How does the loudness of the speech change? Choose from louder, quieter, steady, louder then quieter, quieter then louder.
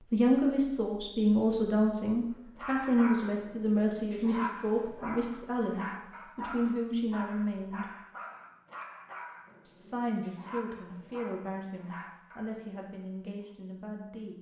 quieter.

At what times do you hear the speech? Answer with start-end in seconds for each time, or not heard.
0.1-7.9, 9.7-14.3.